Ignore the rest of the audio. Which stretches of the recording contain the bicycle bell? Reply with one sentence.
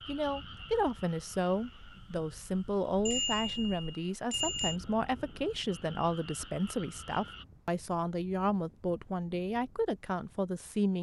You can hear the bicycle bell from 3.0 to 4.8 s.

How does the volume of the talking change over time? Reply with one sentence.
The volume of the talking stays about the same.